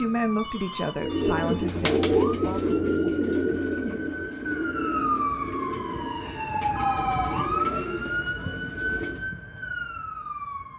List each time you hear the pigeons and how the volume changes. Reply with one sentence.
You can hear the pigeons from 0.9 to 9.2 s, getting quieter.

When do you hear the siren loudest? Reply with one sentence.
The loudest moment of the siren is at 7 seconds.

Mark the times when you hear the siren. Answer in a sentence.
The siren can be heard from 0.0 to 10.7 s.